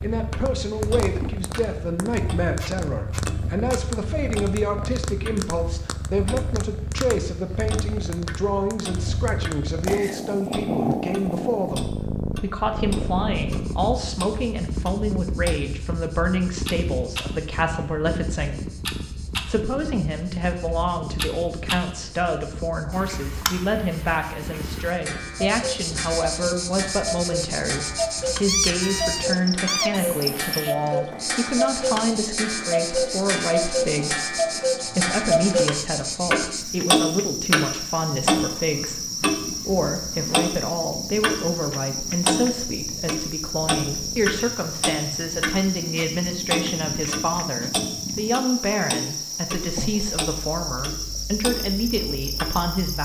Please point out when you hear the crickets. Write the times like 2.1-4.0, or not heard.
13.3-52.9.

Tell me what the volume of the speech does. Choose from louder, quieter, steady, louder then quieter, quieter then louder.
steady.